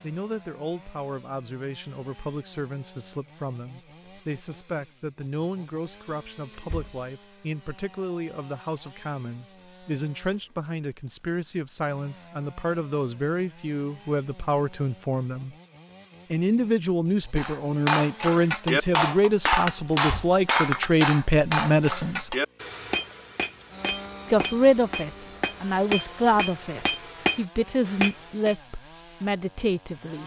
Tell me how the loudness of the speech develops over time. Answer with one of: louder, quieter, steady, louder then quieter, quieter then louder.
louder.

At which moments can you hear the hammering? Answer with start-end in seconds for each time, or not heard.
17.4-28.6.